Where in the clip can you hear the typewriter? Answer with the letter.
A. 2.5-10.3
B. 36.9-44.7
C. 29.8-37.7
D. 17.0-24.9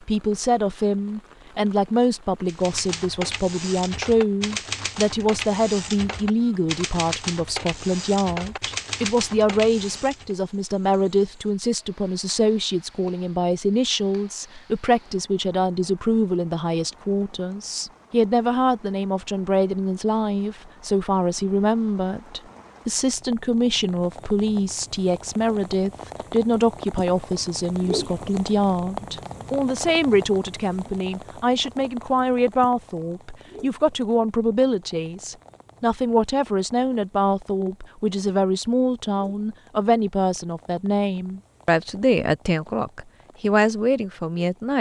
A.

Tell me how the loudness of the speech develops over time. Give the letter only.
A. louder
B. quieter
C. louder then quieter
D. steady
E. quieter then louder
D.